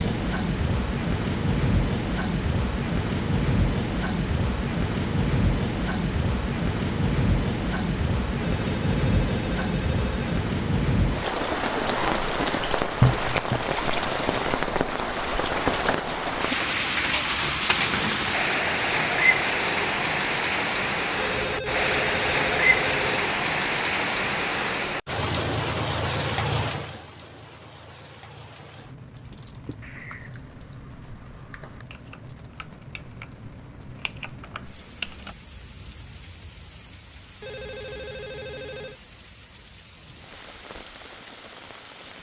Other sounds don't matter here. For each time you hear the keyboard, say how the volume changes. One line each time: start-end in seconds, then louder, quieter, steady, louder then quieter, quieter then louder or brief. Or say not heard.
29.1-35.4 quieter then louder.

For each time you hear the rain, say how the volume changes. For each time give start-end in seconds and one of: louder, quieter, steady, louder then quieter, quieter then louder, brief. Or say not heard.
0.0-42.1 quieter.